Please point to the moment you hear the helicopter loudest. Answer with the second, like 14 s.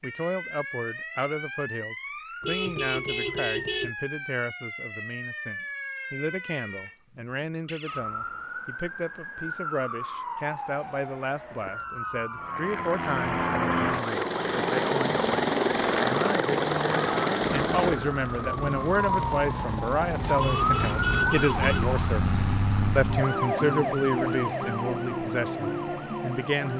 16 s.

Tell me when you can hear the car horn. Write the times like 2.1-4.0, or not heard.
2.4-4.0, 20.4-21.9.